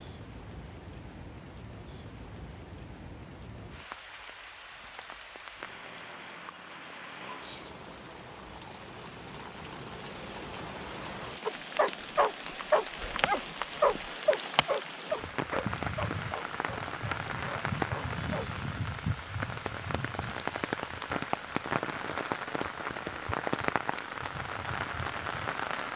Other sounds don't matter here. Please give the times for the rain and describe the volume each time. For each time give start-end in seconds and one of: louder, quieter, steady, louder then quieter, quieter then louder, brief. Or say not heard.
0.0-25.9 louder.